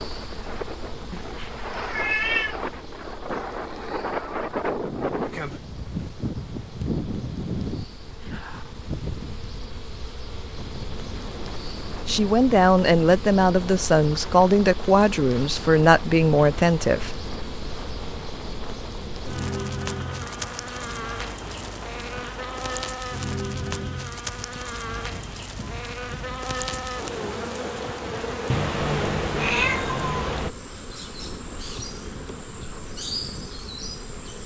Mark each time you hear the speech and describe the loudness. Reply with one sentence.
The speech can be heard from 12.1 to 17.1 s, at a steady volume.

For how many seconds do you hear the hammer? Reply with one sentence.
The hammer can't be heard in this clip.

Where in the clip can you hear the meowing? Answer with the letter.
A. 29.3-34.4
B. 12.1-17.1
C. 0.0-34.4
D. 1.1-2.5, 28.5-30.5
D.